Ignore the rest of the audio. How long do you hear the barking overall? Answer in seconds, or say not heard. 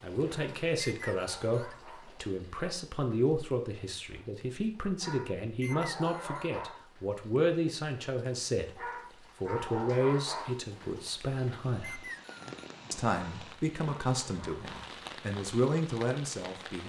7 s.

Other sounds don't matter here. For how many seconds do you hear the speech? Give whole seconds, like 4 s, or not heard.
15 s.